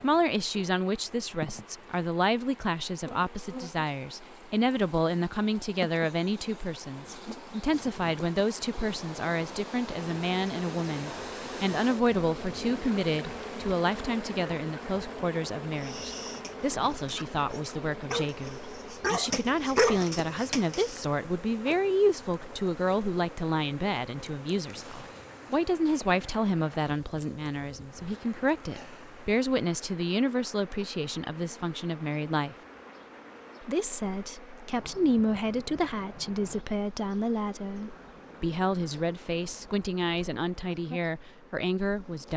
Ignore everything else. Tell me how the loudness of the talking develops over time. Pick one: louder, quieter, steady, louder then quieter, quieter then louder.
steady.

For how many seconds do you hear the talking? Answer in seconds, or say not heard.
41 s.